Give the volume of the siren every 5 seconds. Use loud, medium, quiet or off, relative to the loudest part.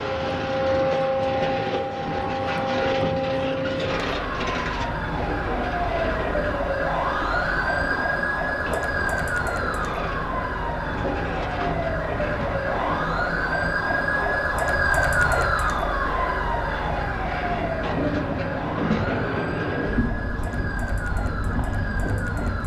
loud, loud, loud, loud, medium.